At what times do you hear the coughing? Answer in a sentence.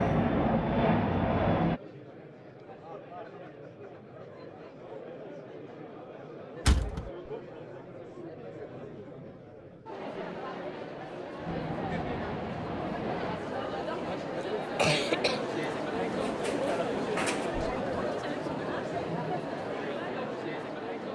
The coughing can be heard from 14.3 to 15.6 s.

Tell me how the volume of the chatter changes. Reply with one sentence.
The volume of the chatter goes up.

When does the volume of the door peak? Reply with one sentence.
The volume of the door peaks at 7 seconds.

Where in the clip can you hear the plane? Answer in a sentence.
You can hear the plane from 0.0 to 1.8 s and from 11.4 to 13.4 s.